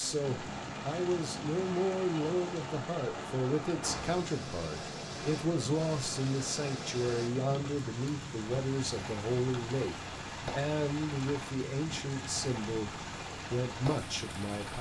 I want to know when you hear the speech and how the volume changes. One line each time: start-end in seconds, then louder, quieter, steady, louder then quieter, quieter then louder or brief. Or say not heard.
0.0-14.7 steady.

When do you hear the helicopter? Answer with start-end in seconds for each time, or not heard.
0.0-14.7.